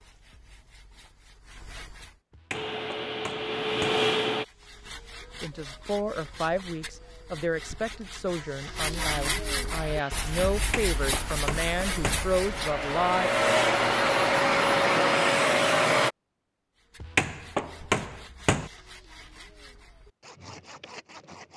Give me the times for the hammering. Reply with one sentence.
You can hear the hammering from 2.3 to 4.0 s, from 10.6 to 12.2 s and from 17.0 to 18.7 s.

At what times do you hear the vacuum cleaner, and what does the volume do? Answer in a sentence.
You can hear the vacuum cleaner briefly from 2.5 to 4.5 s; and from 9.7 to 16.1 s, getting louder.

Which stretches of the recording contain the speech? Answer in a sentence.
The speech can be heard from 5.4 to 13.3 s.